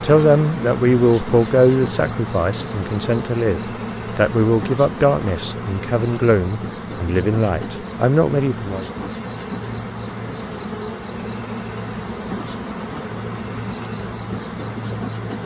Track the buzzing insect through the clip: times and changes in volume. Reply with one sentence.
The buzzing insect can be heard from 0.0 to 15.4 s, at a steady volume.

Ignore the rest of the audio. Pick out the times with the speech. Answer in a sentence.
You can hear the speech from 0.0 to 8.9 s.